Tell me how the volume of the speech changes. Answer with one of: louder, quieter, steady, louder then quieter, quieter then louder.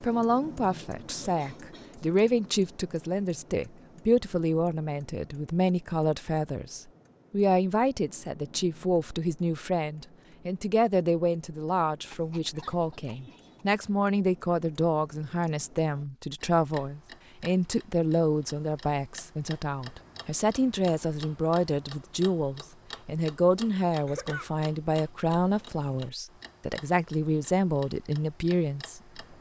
steady.